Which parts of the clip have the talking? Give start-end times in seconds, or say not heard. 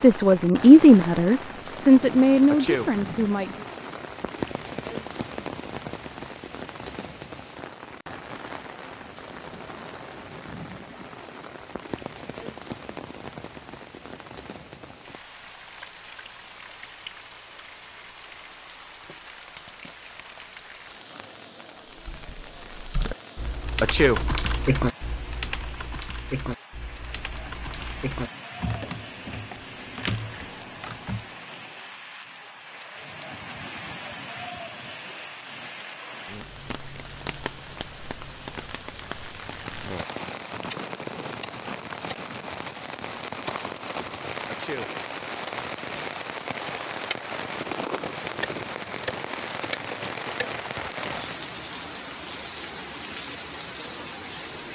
0.0-3.6.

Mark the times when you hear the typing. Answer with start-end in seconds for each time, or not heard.
21.9-31.2.